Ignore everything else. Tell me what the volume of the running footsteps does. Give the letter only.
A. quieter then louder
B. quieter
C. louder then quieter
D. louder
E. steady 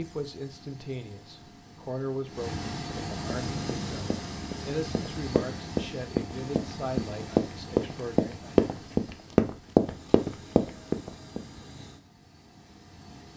D.